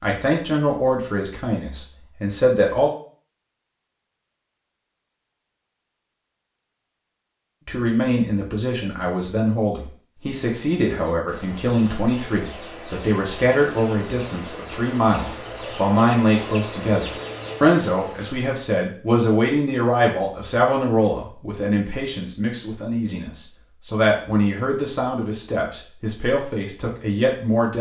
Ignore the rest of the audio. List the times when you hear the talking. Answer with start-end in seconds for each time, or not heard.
0.0-2.9, 7.7-27.7.